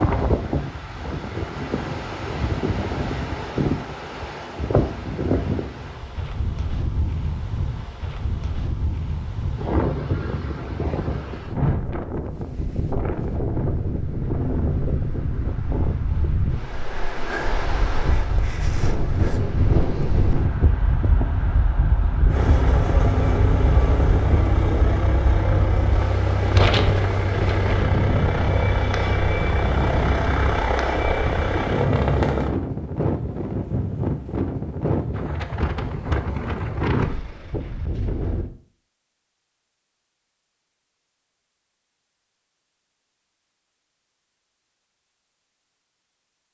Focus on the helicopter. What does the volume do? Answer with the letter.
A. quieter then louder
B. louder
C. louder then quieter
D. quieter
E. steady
E.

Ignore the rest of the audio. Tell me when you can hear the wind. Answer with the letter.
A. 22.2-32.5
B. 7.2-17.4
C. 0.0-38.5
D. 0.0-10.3
C.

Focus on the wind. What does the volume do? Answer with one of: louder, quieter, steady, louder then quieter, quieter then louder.
steady.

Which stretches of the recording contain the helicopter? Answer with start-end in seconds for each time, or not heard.
22.2-32.5.